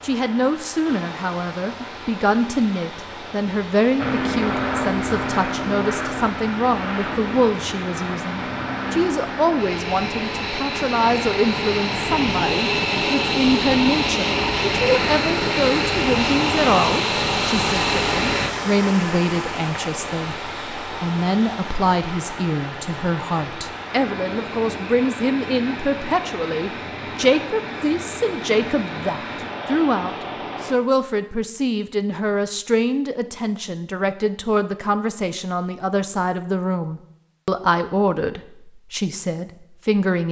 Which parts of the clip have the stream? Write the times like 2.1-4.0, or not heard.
0.0-30.8.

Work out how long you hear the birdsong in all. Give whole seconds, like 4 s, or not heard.
not heard.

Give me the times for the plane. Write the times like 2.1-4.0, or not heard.
4.0-18.5.